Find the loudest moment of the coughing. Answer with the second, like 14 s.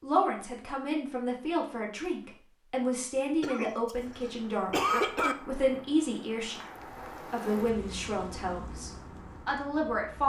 5 s.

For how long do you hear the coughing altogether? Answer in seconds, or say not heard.
2 s.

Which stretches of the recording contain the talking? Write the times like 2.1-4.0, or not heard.
0.0-6.7, 7.3-10.2.